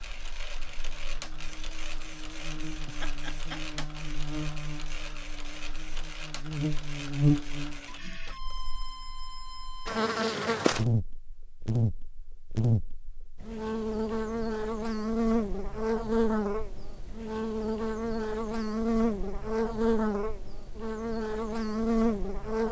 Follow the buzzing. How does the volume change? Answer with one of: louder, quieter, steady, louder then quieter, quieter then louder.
louder.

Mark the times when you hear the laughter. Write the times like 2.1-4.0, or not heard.
2.9-3.9.